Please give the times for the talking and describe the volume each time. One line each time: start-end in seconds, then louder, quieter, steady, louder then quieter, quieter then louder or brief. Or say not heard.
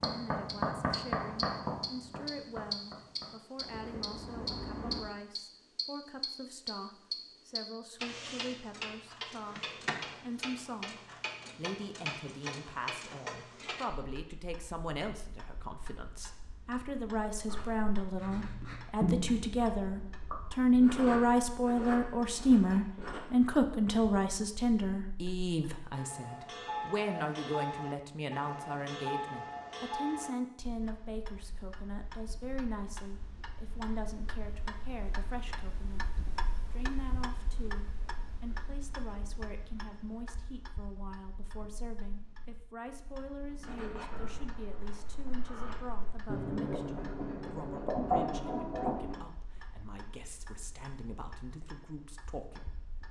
0.0-52.8 louder then quieter.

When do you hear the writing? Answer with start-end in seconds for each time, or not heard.
0.0-5.0, 17.4-23.2, 43.6-49.2.